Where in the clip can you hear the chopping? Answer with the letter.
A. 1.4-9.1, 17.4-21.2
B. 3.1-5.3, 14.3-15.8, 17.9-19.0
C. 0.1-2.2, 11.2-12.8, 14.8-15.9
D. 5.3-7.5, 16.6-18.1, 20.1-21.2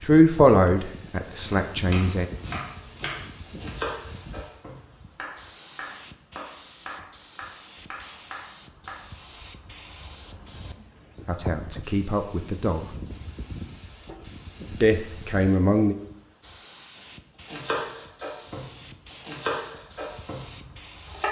A.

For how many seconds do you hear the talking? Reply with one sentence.
The talking can be heard for 5 seconds in total.